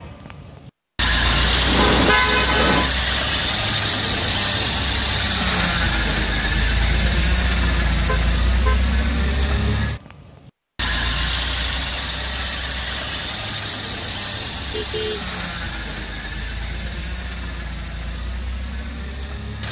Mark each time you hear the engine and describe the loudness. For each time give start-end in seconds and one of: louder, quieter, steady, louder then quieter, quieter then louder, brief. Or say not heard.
0.0-19.6 quieter.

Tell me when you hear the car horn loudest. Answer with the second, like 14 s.
2 s.